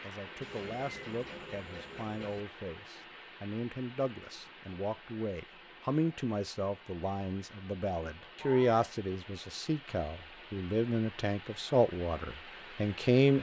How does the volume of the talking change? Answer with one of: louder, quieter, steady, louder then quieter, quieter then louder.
louder.